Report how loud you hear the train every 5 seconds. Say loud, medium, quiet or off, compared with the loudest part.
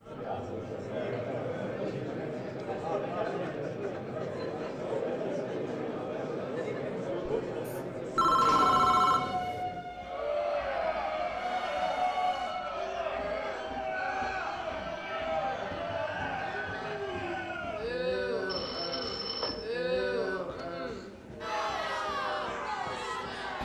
off, loud, loud, quiet, quiet.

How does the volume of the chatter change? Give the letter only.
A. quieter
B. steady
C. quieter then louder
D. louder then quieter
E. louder
B.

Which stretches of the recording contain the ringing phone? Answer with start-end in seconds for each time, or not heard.
7.7-9.6, 18.4-19.6.